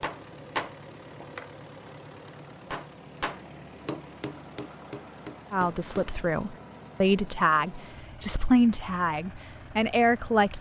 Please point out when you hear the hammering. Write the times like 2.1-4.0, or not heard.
0.0-6.1.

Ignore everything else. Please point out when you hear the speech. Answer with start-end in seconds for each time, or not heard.
5.5-10.5.